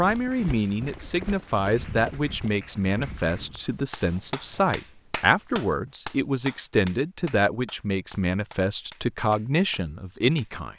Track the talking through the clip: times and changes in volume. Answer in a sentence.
The talking can be heard from 0.0 to 10.7 s, at a steady volume.